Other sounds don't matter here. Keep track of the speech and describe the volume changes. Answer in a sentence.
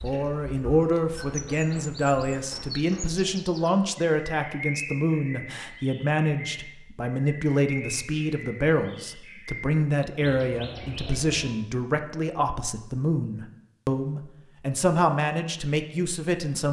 The volume of the speech stays about the same.